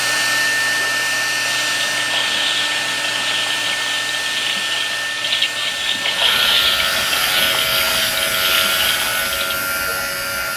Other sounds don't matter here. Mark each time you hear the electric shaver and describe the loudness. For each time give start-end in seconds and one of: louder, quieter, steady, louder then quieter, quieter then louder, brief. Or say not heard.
6.1-10.5 steady.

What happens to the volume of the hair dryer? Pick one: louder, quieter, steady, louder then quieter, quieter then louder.
quieter.